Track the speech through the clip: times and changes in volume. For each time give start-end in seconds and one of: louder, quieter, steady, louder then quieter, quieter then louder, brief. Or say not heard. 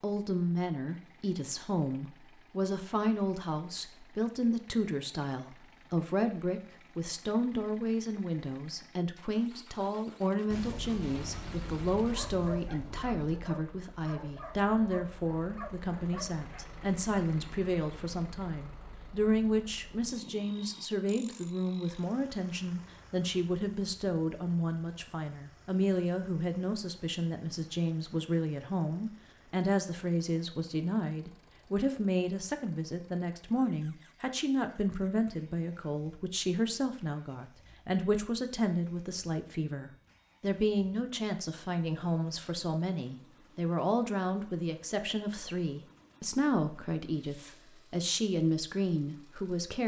0.0-49.8 steady.